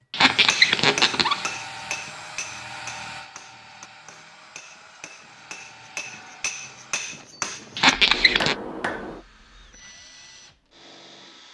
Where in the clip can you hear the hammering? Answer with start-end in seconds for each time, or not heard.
0.3-9.2.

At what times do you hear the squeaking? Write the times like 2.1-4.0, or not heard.
0.1-1.6, 7.8-8.6.